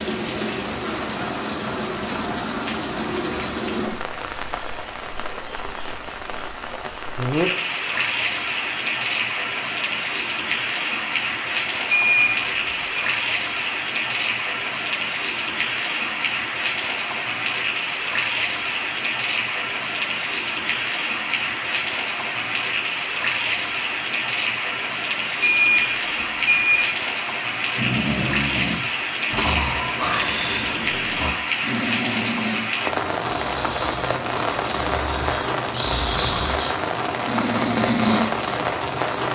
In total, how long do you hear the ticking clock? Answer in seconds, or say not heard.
not heard.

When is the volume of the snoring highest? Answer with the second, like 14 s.
38 s.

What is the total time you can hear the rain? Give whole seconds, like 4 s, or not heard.
39 s.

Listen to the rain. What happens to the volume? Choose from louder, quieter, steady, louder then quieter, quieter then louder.
steady.